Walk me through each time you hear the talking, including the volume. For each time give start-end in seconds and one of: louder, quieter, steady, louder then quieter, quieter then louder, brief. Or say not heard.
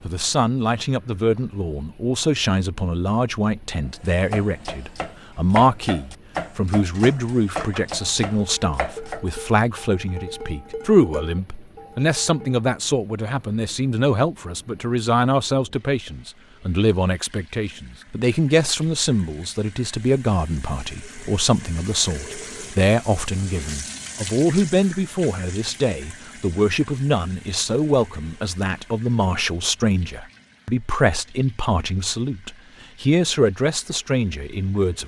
0.0-35.0 steady.